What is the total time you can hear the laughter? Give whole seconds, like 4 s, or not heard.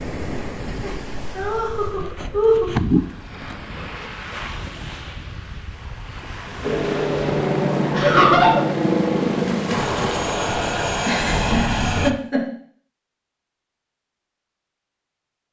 4 s.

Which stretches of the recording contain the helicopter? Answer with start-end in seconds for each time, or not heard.
6.6-12.1.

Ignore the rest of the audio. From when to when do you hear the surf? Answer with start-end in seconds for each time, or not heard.
0.0-10.3.